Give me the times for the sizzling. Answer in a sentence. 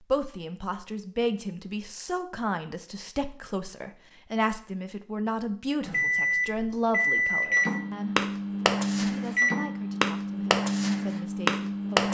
You can't hear the sizzling here.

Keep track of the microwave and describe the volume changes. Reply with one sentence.
The volume of the microwave stays about the same.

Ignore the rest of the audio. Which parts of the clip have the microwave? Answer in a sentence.
The microwave can be heard from 5.8 to 12.0 s.